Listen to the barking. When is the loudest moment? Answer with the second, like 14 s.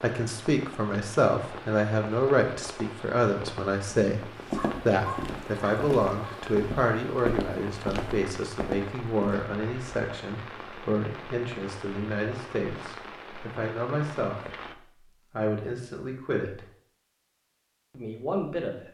5 s.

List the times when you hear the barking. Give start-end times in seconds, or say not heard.
4.5-6.4.